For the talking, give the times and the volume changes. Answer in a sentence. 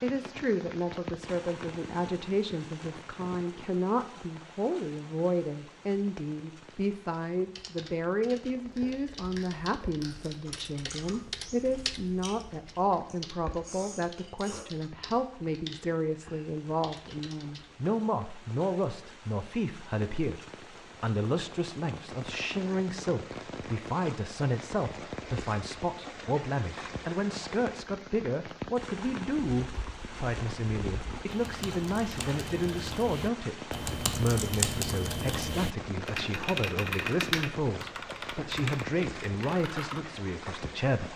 You can hear the talking from 0.0 to 41.1 s, at a steady volume.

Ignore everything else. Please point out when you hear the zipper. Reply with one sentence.
You can't hear the zipper here.